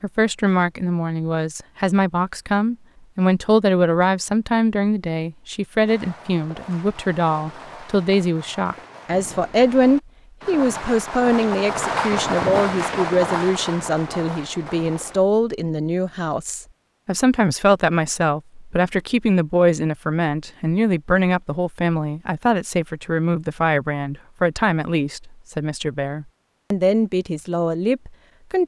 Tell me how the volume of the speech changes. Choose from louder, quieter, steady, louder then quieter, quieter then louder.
steady.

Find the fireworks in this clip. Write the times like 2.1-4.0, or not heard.
5.8-15.2.